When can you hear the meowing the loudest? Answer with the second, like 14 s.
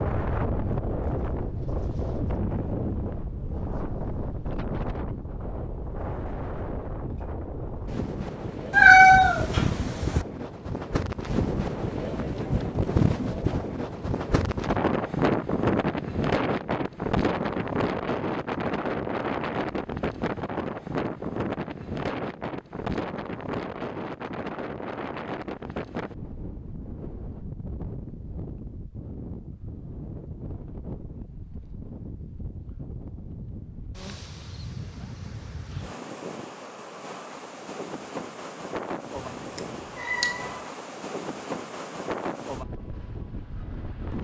9 s.